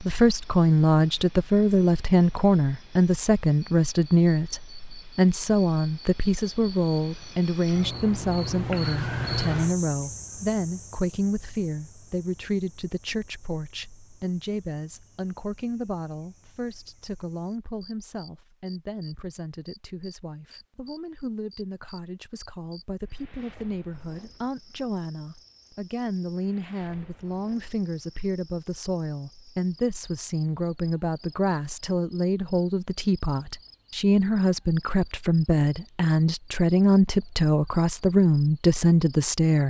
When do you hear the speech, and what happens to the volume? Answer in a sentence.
The speech can be heard from 0.0 to 39.6 s, getting quieter then louder.